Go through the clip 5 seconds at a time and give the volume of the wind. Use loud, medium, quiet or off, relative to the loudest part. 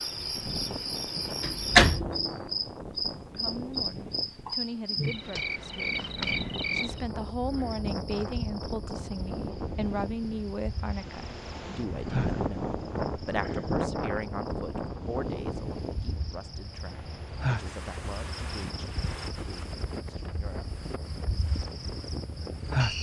medium, medium, loud, medium, medium.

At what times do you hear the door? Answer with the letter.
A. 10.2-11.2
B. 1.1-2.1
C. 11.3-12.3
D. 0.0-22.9
B.